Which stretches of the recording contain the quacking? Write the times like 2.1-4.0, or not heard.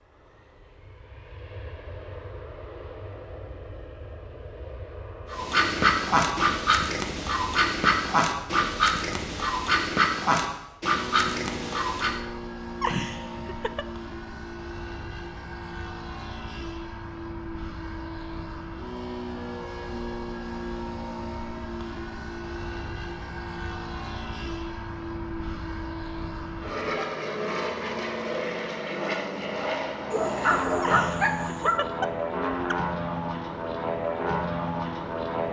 5.3-12.2.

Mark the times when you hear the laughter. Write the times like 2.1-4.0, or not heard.
12.8-13.8, 30.8-32.8.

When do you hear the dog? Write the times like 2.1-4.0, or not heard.
30.1-31.8.